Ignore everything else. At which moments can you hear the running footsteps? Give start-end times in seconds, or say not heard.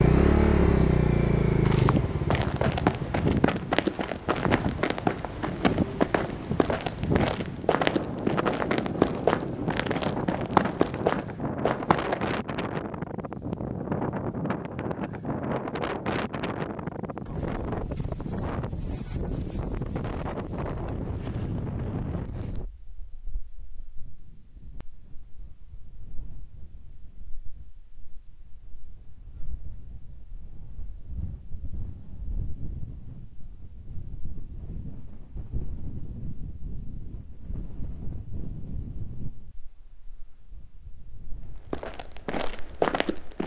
1.6-12.2, 41.5-43.4.